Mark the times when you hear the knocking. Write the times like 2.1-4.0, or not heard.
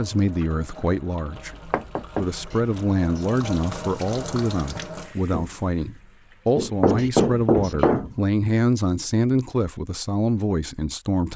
1.5-2.2, 6.5-8.2.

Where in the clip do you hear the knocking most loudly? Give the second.
7 s.